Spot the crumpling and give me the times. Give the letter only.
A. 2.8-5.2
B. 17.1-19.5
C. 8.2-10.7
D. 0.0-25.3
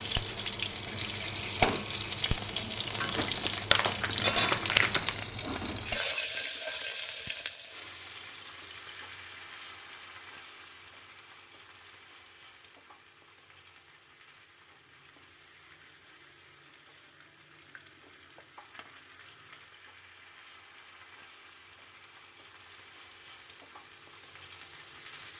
A.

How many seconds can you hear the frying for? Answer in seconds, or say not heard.
25 s.